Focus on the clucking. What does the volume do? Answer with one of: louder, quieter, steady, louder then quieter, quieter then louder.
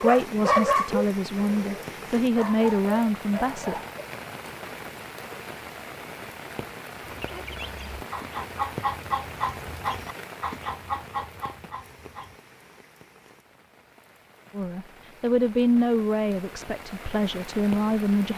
louder then quieter.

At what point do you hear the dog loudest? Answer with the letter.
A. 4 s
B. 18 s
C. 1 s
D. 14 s
C.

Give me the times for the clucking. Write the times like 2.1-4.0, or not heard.
7.0-12.3.